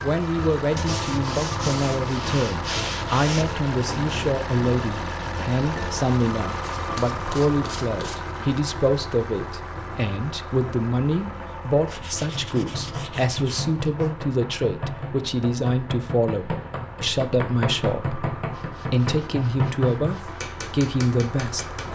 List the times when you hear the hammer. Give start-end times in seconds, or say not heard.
12.2-21.9.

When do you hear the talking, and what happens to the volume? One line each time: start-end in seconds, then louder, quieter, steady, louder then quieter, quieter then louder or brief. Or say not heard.
0.0-21.9 steady.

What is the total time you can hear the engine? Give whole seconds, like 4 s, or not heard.
22 s.